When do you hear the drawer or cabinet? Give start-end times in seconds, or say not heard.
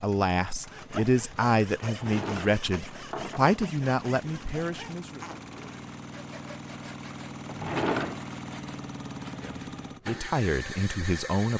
1.9-3.6, 7.5-8.2.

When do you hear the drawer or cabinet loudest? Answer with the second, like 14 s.
8 s.